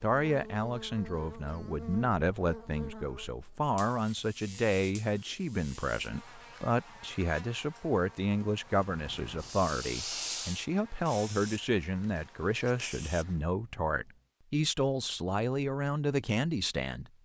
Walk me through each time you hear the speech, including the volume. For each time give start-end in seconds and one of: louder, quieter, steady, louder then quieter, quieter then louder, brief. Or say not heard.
0.0-17.1 steady.